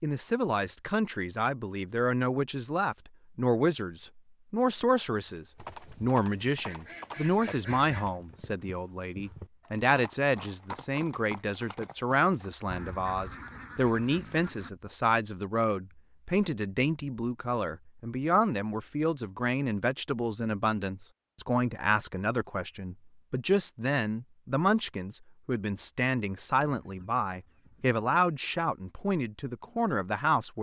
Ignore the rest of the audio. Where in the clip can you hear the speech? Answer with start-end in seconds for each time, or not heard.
0.0-30.5.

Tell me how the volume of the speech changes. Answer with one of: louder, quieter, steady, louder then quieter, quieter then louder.
steady.